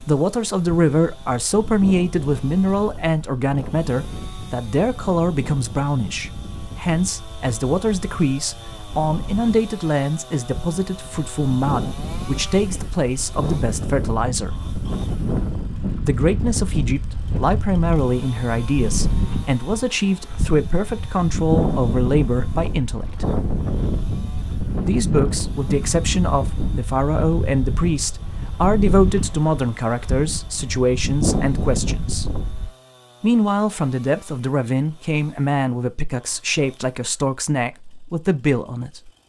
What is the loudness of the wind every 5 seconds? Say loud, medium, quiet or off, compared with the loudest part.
medium, medium, loud, loud, loud, loud, loud, off.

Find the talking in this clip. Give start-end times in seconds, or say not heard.
0.1-14.6, 16.1-23.2, 24.9-32.4, 33.2-39.1.